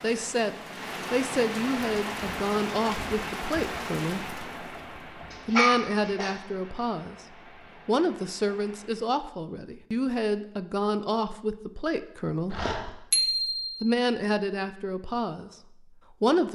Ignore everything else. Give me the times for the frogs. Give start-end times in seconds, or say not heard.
not heard.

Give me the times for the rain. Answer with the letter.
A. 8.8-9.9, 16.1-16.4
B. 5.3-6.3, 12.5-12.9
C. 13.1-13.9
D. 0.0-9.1
D.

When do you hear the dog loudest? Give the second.
6 s.